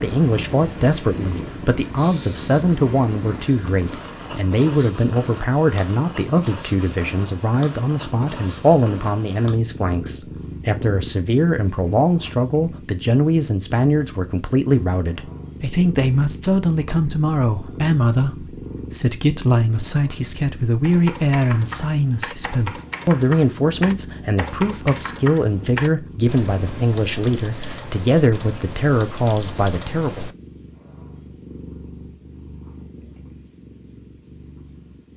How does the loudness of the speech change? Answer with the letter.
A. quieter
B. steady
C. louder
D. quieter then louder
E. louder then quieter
B.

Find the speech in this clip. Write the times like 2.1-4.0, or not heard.
0.0-30.2.